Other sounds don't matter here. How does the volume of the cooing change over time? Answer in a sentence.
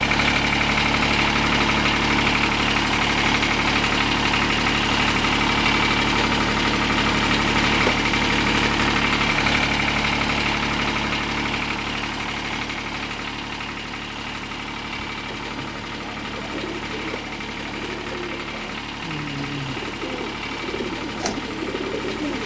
The volume of the cooing goes up.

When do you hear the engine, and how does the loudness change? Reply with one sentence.
The engine can be heard from 0.0 to 22.4 s, getting quieter.